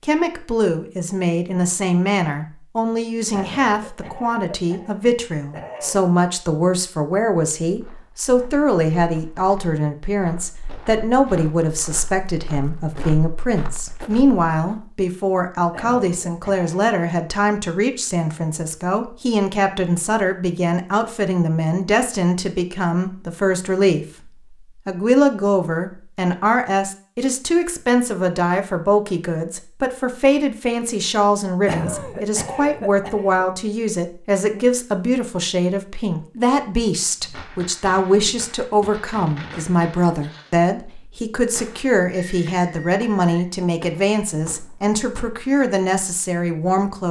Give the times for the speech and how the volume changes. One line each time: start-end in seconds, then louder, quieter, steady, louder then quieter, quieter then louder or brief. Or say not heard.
0.0-47.0 steady.